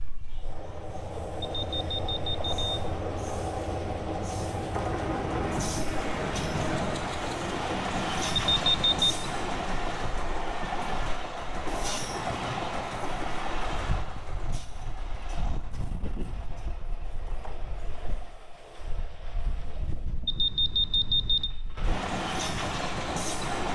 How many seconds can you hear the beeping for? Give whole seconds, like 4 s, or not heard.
3 s.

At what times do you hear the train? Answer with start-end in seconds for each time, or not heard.
0.0-23.7.